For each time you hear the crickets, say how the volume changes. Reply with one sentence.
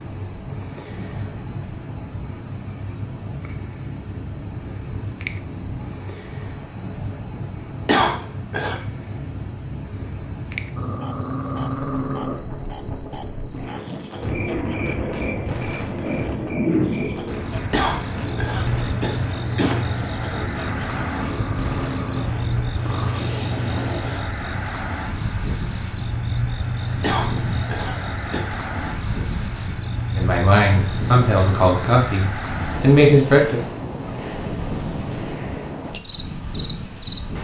The crickets can be heard from 0.0 to 37.3 s, getting louder.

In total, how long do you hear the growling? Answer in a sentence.
You can hear the growling for 4 seconds altogether.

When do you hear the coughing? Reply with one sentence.
You can hear the coughing from 7.8 to 8.8 s, from 17.7 to 19.8 s and from 27.0 to 28.5 s.